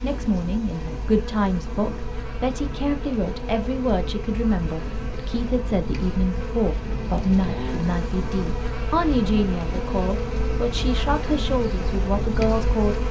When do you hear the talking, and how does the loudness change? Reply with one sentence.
You can hear the talking from 0.0 to 13.0 s, at a steady volume.